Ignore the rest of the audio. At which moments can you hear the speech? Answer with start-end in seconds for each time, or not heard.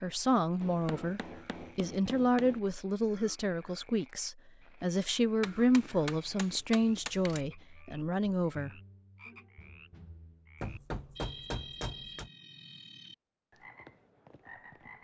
0.0-8.7.